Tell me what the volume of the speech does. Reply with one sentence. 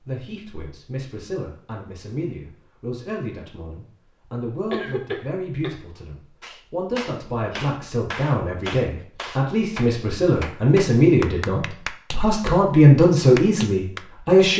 The volume of the speech goes up.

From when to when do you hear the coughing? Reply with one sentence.
You can hear the coughing from 4.7 to 5.7 s.